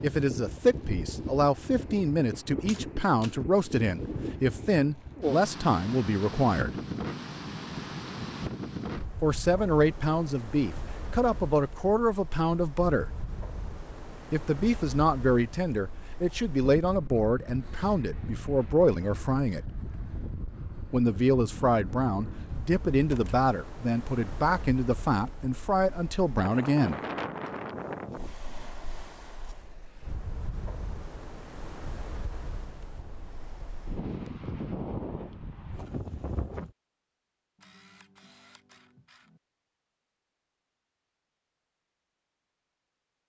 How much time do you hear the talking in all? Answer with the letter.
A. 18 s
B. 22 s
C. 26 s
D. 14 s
B.